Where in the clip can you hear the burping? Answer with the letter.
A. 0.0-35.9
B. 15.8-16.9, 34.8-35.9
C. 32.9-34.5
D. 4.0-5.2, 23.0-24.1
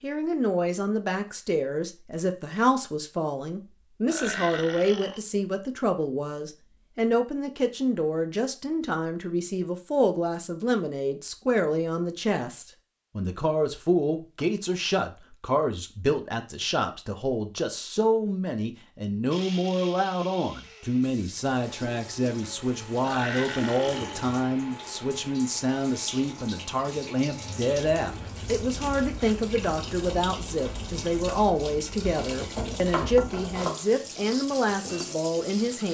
D.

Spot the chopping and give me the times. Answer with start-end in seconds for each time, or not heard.
32.9-34.5.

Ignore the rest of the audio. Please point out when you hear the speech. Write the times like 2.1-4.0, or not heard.
0.0-35.9.